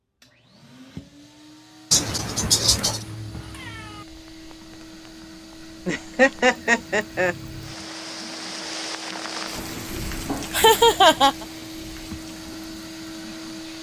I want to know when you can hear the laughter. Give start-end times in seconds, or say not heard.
1.9-3.0, 5.8-7.3, 10.5-11.4.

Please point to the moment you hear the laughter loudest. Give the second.
11 s.